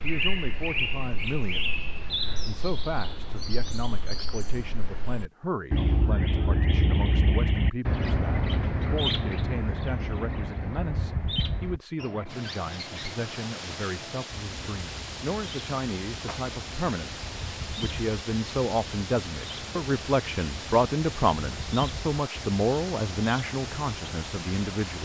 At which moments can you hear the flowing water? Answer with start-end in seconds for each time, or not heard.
12.2-25.0.